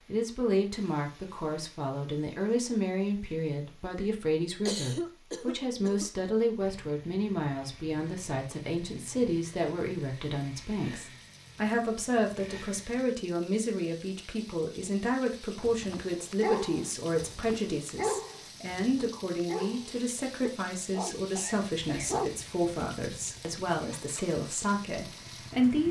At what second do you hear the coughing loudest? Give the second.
5 s.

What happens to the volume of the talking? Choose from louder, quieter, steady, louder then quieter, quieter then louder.
steady.